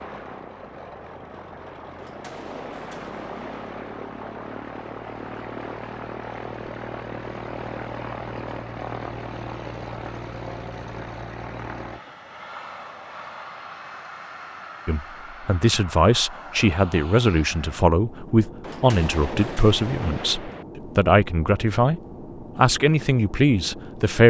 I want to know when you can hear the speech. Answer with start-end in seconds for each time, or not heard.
14.8-24.2.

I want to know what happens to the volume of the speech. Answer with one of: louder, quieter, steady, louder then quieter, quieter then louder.
steady.